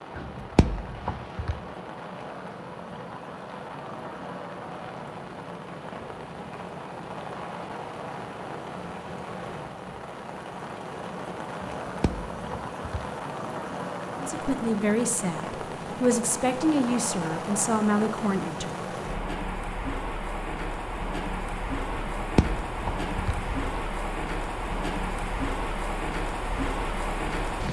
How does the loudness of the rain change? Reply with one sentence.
The volume of the rain goes up.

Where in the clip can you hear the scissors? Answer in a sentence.
The scissors can be heard from 0.3 to 1.6 s, from 11.8 to 13.0 s and from 22.1 to 23.6 s.